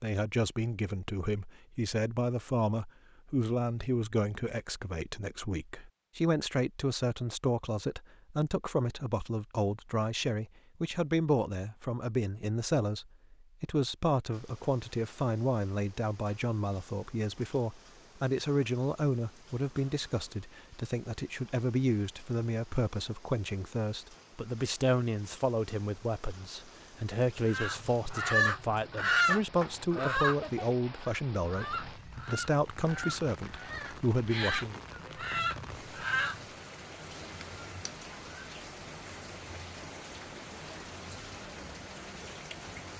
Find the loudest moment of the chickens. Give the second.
29 s.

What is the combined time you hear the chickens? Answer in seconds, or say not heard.
9 s.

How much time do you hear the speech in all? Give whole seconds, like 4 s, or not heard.
35 s.